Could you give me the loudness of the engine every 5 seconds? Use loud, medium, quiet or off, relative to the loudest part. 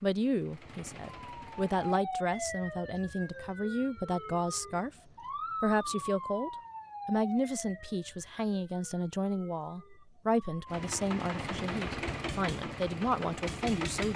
quiet, off, loud.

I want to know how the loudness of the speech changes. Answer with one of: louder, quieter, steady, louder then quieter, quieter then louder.
steady.